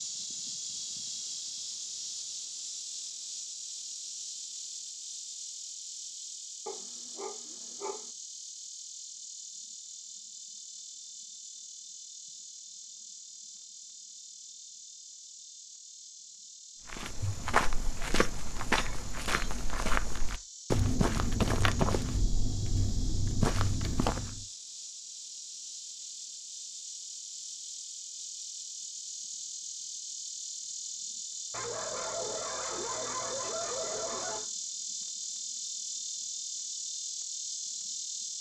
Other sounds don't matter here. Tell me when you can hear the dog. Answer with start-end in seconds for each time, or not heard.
6.7-8.1, 31.5-34.5.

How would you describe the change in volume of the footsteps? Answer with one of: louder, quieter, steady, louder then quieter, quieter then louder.
steady.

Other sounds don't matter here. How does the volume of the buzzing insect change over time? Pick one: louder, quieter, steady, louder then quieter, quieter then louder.
quieter then louder.